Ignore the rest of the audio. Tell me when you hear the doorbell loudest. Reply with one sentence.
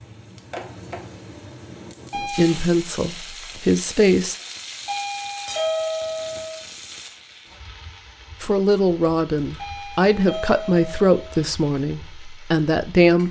The loudest moment of the doorbell is at 6 seconds.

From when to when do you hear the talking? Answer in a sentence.
The talking can be heard from 2.1 to 4.3 s and from 8.4 to 13.2 s.